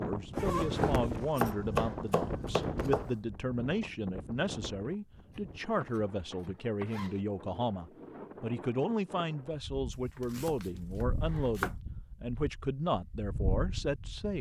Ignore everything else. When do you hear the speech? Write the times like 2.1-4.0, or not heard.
0.0-14.3.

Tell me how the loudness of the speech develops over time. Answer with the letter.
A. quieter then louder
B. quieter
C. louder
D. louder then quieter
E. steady
E.